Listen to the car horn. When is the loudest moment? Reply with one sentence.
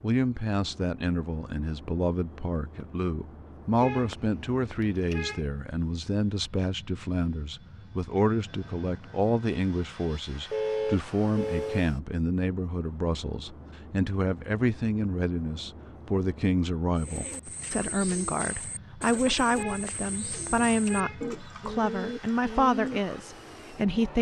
The loudest moment of the car horn is at 11 seconds.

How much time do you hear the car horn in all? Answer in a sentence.
You can hear the car horn for 5 seconds altogether.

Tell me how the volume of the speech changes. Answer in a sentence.
The volume of the speech stays about the same.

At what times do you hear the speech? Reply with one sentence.
You can hear the speech from 0.0 to 24.1 s.